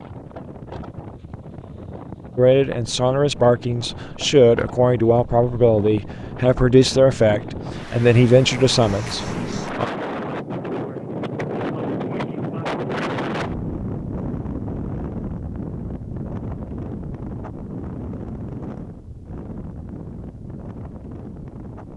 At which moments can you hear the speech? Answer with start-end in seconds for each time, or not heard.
2.4-9.8.